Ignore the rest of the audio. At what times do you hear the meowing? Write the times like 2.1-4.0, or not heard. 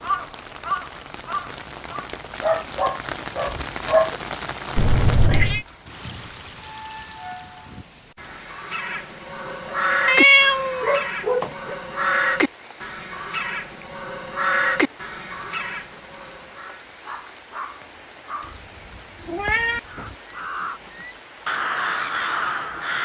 4.8-5.7, 10.1-10.9, 18.5-20.1.